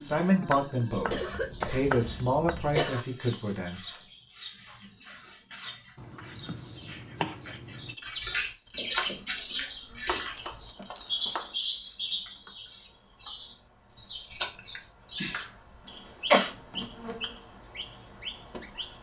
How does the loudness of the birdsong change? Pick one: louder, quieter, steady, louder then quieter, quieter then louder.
louder then quieter.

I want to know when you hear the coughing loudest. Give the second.
16 s.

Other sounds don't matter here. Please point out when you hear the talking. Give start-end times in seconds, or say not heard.
0.0-3.8.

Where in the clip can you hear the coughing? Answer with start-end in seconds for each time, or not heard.
1.1-3.0, 15.8-16.5.